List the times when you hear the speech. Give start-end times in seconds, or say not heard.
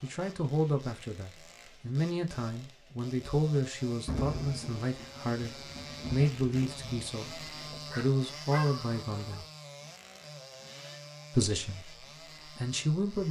0.0-9.4, 11.3-13.2.